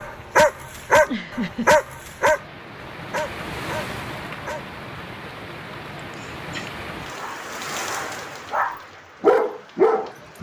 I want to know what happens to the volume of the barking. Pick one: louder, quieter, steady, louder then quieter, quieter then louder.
quieter then louder.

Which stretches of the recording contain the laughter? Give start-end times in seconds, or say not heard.
0.9-1.7, 6.0-6.7.